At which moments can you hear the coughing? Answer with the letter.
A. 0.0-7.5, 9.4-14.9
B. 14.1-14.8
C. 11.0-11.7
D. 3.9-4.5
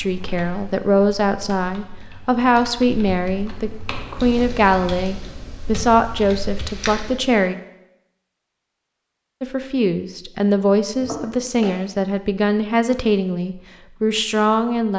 C.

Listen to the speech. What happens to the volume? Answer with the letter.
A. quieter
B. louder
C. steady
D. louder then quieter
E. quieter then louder
C.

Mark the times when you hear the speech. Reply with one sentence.
The speech can be heard from 0.0 to 7.5 s and from 9.4 to 14.9 s.